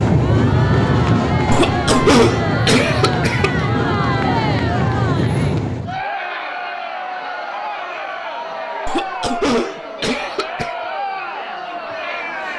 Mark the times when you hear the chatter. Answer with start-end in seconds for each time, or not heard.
0.1-12.5.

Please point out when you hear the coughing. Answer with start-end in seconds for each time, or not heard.
1.5-3.5, 8.8-10.8.